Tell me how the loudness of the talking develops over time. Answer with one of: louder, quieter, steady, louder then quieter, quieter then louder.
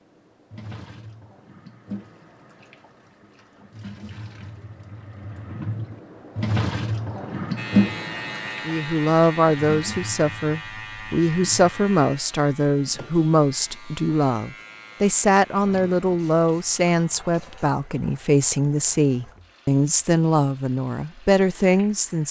steady.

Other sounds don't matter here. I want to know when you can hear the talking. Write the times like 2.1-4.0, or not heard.
8.7-22.2.